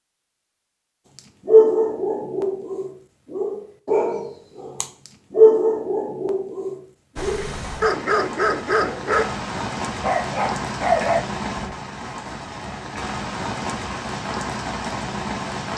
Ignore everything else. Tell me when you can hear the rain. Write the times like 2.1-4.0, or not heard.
7.2-15.7.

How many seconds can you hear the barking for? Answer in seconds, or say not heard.
9 s.